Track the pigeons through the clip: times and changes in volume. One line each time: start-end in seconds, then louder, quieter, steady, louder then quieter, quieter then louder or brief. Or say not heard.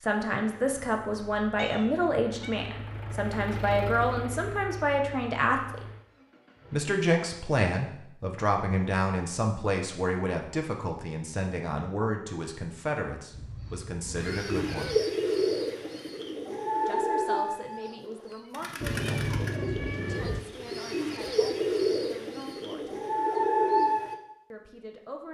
14.2-24.1 quieter then louder.